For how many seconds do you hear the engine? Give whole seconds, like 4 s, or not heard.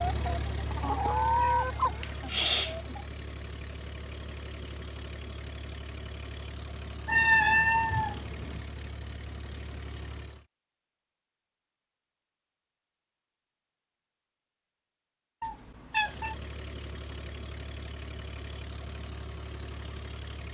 15 s.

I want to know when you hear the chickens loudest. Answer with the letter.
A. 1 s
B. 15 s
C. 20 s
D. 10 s
A.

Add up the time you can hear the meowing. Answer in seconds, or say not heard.
4 s.